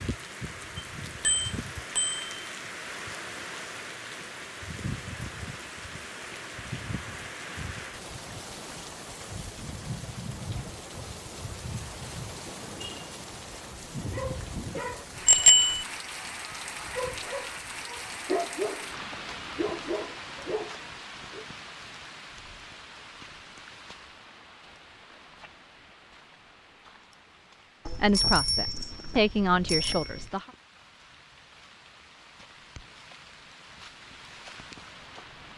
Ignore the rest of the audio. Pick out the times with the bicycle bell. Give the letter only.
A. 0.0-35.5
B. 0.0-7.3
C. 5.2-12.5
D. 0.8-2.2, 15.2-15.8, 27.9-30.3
D.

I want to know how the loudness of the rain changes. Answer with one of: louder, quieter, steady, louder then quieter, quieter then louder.
quieter.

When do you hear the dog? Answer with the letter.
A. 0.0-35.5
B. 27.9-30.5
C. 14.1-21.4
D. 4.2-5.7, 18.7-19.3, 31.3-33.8
C.